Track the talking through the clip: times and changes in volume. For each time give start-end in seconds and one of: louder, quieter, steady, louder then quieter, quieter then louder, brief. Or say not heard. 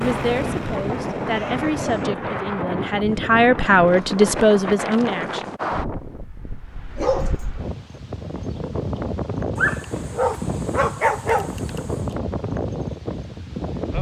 0.0-5.5 louder.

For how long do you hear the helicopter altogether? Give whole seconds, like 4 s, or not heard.
2 s.